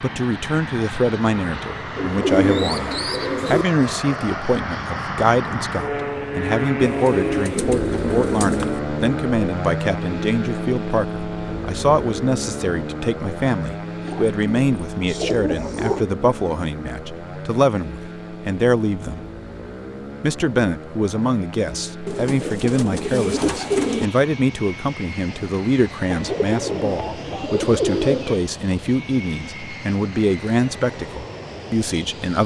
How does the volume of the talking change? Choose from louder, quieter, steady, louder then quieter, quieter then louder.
steady.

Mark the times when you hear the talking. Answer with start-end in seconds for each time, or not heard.
0.0-19.2, 20.2-32.4.